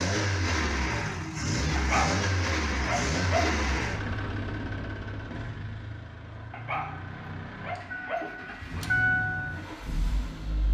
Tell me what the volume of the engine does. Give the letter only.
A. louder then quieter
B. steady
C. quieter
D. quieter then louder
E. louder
D.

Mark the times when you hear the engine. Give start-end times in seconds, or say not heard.
0.0-10.7.